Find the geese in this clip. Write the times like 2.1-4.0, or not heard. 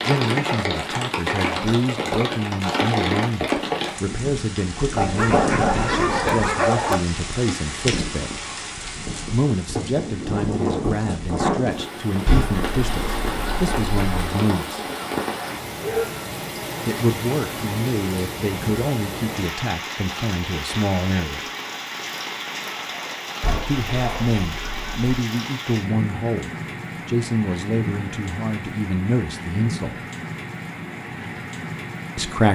12.2-14.3, 23.4-25.1.